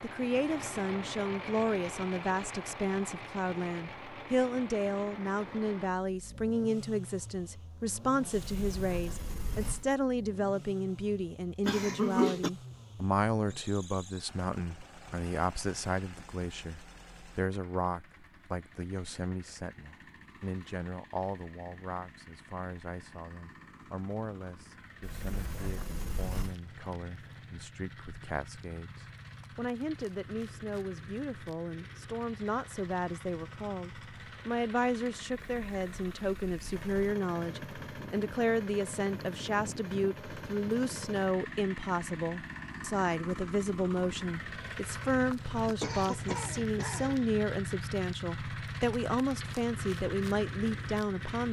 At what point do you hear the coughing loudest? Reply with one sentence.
The loudest moment of the coughing is at 12 seconds.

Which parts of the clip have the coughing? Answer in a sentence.
The coughing can be heard from 11.7 to 12.5 s and from 45.6 to 47.3 s.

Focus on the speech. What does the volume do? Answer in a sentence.
The loudness of the speech goes down, then up.